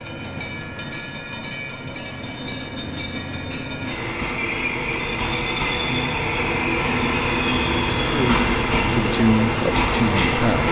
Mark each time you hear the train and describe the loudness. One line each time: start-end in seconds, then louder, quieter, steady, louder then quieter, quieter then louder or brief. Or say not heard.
0.0-10.6 louder.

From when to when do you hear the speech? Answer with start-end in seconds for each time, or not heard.
8.1-10.6.